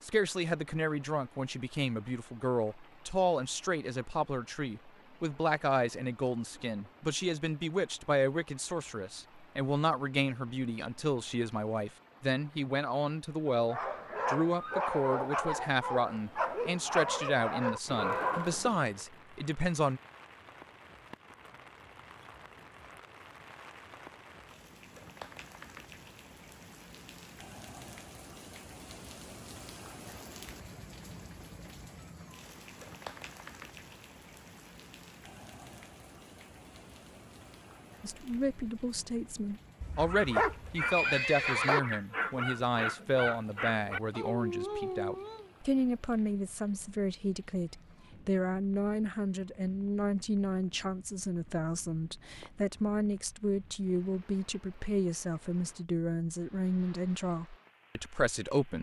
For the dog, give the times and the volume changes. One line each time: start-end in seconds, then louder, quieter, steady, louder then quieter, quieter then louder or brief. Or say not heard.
13.5-19.0 steady
40.0-45.5 steady.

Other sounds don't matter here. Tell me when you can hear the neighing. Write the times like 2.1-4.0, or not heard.
39.8-41.8.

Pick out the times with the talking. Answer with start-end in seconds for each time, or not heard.
0.0-20.0, 38.0-58.7.